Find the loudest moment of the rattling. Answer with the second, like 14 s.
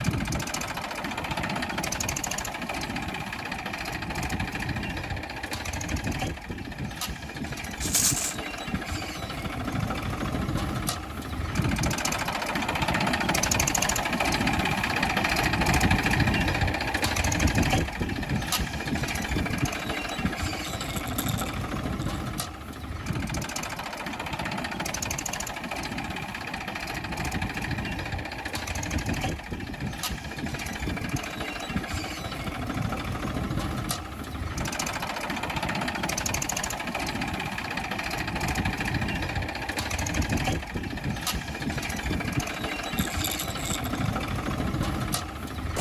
8 s.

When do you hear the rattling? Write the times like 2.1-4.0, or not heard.
7.8-8.3, 20.6-22.2, 43.0-43.9.